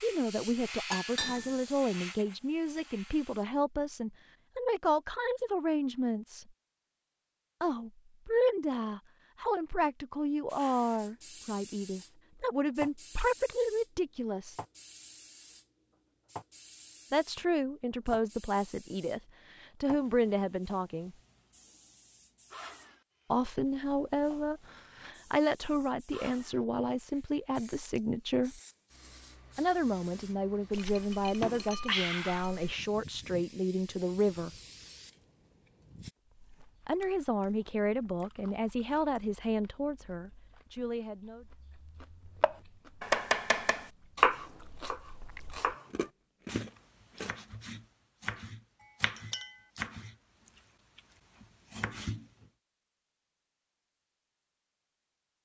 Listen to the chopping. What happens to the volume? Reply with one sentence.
The loudness of the chopping goes down.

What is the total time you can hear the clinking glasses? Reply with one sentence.
You can hear the clinking glasses for 3 seconds altogether.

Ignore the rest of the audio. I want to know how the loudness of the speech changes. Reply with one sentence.
The loudness of the speech stays about the same.